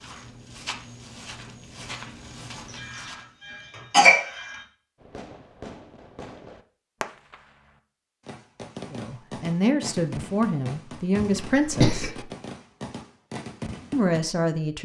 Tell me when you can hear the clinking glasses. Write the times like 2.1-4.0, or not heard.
not heard.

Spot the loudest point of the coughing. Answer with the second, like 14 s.
4 s.